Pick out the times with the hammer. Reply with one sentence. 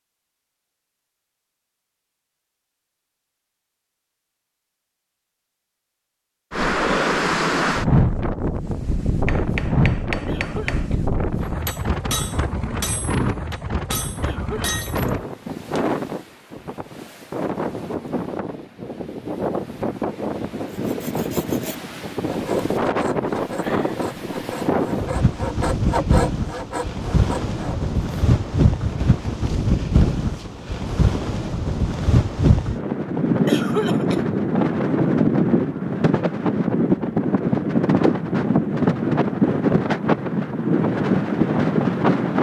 You can hear the hammer from 9.2 to 15.9 s.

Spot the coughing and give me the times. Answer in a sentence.
The coughing can be heard from 10.2 to 11.1 s, from 14.2 to 15.0 s and from 33.5 to 34.2 s.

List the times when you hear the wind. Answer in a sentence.
You can hear the wind from 6.5 to 42.3 s.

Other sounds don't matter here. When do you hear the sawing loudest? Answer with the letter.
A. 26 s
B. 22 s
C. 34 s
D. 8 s
A.